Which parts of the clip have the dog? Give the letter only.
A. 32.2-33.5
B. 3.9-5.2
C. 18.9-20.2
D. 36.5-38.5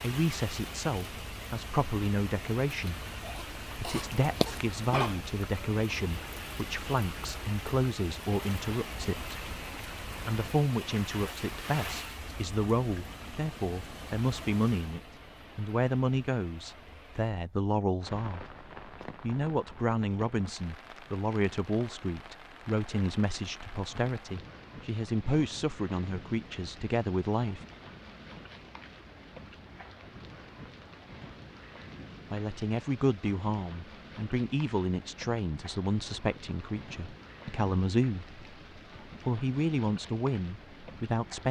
B.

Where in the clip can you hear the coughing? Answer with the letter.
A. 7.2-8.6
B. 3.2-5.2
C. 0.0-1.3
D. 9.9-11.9
B.